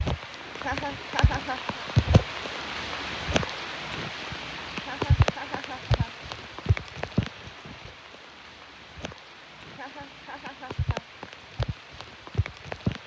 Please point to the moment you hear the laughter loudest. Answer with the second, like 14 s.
1 s.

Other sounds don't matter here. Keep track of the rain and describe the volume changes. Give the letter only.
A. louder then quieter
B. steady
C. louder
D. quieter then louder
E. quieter
D.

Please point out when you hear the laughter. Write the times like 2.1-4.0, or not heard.
0.6-1.9, 4.8-6.2, 9.7-11.1.